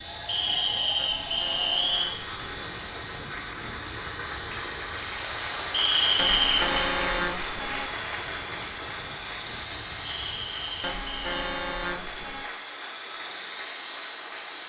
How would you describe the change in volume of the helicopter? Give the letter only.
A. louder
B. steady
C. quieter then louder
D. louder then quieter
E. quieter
B.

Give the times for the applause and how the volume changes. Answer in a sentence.
The applause can be heard from 0.0 to 14.6 s, getting louder then quieter.